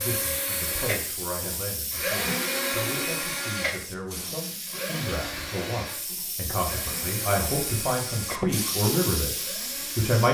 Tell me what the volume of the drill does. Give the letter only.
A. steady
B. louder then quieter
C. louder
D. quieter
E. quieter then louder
D.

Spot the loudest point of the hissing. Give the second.
9 s.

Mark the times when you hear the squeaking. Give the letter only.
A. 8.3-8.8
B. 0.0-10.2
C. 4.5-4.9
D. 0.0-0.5
A.